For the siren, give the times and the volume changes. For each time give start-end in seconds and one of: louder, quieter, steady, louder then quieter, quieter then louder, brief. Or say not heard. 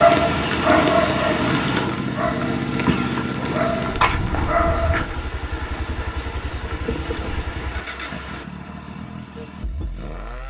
not heard.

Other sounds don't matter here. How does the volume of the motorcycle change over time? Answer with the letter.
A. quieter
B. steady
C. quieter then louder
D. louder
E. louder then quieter
A.